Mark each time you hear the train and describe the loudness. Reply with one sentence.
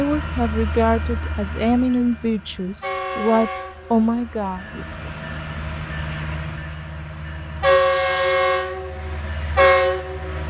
You can hear the train from 0.0 to 10.4 s, getting louder.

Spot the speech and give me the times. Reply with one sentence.
You can hear the speech from 0.0 to 4.7 s.